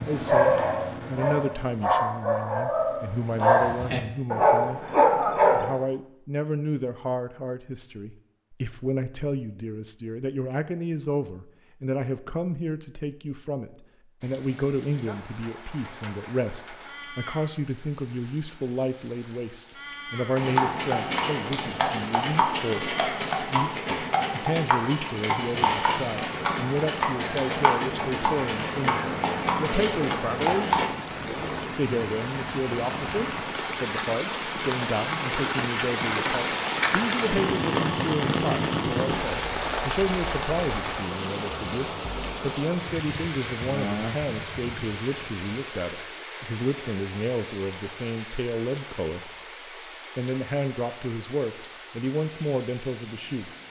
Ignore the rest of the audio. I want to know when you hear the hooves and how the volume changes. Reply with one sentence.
The hooves can be heard from 20.4 to 30.9 s, at a steady volume.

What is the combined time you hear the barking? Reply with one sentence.
You can hear the barking for 6 seconds altogether.